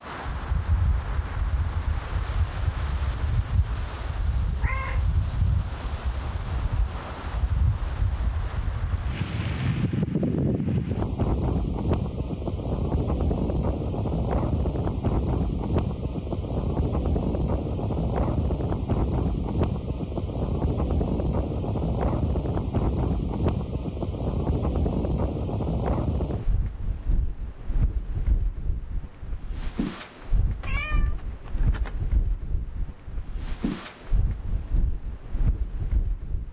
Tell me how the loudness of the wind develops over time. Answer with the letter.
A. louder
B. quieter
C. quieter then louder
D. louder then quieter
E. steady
D.